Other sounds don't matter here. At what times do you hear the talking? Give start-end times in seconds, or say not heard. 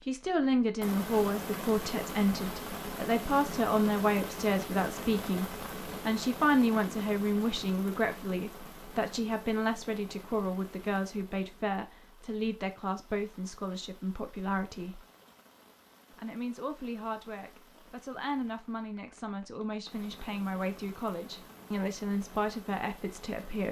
0.1-15.1, 16.1-23.6.